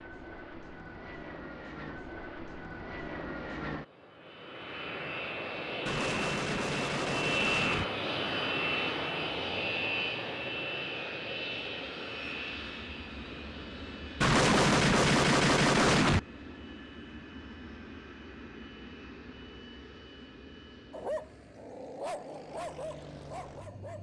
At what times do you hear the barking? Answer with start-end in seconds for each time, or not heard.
20.9-23.9.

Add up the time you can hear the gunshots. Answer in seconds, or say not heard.
4 s.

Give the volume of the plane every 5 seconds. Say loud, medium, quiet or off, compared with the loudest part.
medium, loud, medium, quiet, quiet.